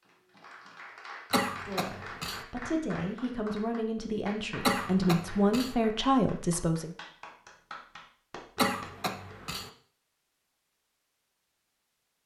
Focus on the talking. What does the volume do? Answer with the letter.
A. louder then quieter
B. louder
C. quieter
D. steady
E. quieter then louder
B.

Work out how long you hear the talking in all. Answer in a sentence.
The talking can be heard for 5 seconds in total.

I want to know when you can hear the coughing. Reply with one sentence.
The coughing can be heard from 1.3 to 2.5 s, from 4.7 to 5.8 s and from 8.6 to 9.7 s.